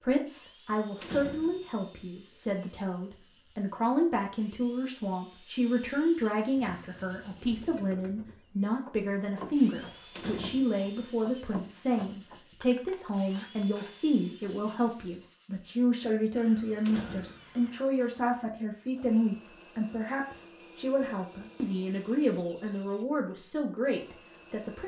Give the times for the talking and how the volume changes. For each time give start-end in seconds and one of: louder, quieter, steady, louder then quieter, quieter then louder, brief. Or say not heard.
0.0-24.8 steady.